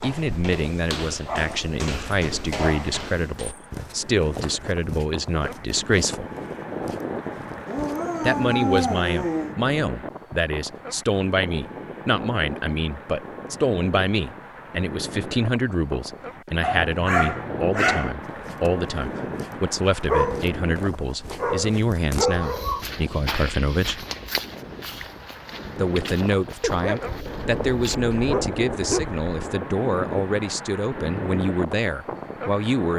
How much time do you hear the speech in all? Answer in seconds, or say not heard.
29 s.